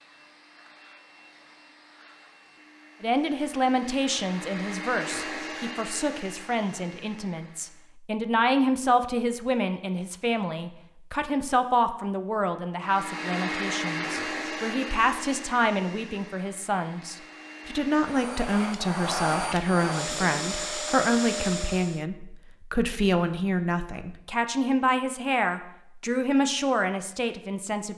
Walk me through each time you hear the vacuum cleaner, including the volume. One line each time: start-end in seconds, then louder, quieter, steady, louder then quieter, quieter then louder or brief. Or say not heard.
0.0-8.0 louder then quieter
12.8-22.1 quieter then louder.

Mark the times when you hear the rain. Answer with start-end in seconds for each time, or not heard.
not heard.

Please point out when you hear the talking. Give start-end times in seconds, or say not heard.
3.0-27.9.